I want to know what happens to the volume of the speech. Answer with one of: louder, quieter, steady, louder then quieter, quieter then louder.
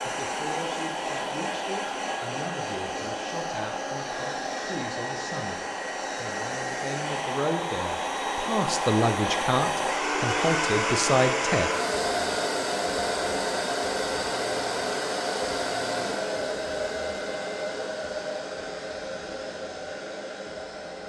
louder.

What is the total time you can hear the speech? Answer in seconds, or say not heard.
12 s.